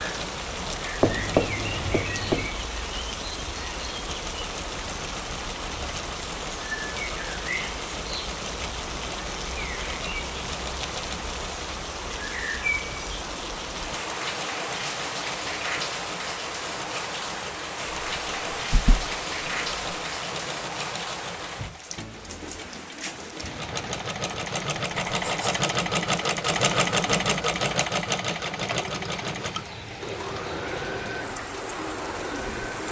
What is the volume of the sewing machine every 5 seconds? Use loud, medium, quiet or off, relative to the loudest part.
quiet, quiet, quiet, quiet, medium, loud, medium.